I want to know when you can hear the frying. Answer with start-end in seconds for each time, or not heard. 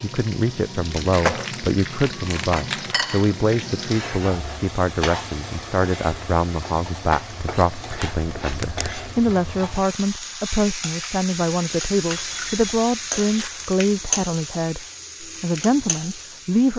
0.0-16.7.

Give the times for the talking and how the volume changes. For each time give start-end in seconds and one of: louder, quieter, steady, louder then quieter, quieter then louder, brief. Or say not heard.
0.0-16.7 steady.